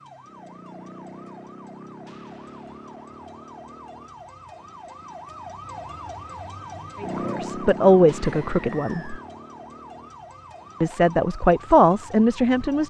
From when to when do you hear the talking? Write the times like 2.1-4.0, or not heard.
7.0-9.2, 10.8-12.8.